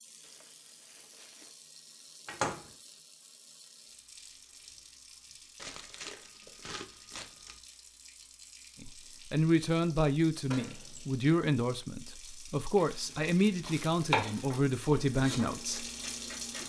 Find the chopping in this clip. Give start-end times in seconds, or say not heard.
13.1-16.6.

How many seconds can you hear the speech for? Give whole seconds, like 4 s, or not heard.
7 s.